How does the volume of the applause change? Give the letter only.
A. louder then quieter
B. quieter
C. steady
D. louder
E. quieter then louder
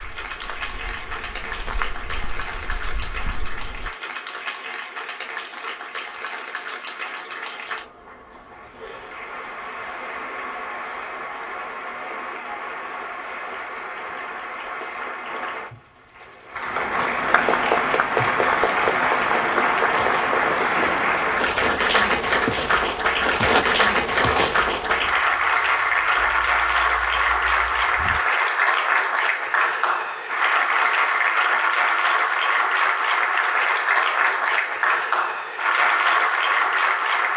D.